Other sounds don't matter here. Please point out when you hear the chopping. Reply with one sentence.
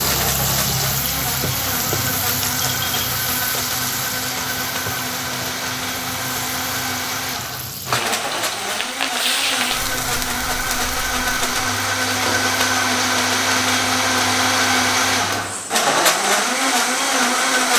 You can't hear the chopping here.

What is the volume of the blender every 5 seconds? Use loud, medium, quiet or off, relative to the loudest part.
medium, medium, loud, loud.